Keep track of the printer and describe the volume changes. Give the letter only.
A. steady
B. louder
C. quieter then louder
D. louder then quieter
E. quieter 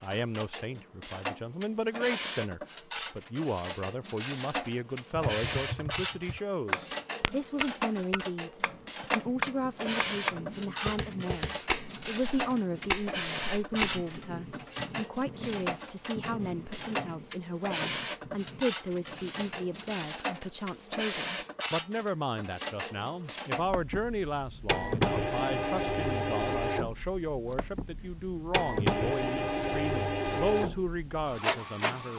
A.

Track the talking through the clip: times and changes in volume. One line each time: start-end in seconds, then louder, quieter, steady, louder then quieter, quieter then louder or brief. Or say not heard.
0.0-32.1 steady.